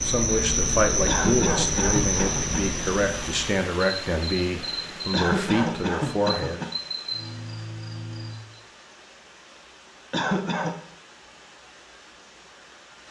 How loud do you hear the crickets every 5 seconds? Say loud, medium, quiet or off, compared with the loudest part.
loud, medium, off.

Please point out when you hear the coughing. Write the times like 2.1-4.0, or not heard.
1.1-2.6, 5.1-6.7, 10.1-10.8.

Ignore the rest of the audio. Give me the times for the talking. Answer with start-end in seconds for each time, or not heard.
0.0-6.7.